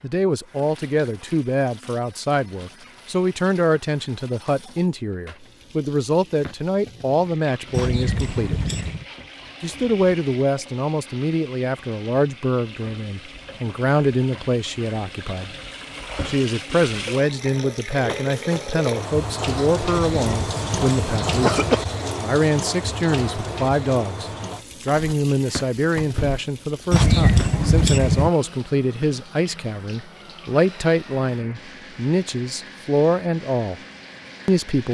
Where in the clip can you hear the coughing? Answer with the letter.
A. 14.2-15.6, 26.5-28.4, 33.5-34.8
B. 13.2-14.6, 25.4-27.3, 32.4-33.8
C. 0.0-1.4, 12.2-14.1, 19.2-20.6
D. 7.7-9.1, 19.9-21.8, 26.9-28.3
D.